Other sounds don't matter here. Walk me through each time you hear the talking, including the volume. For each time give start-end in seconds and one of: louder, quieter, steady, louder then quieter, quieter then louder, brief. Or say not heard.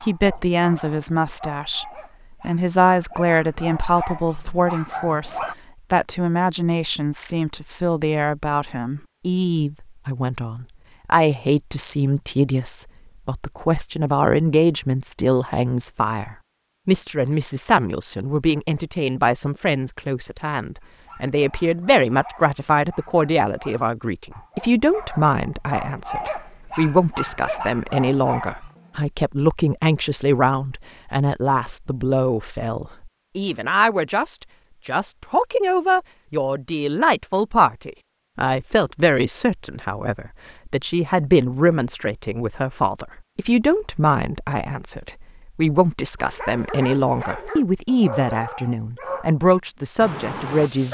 0.0-50.8 steady.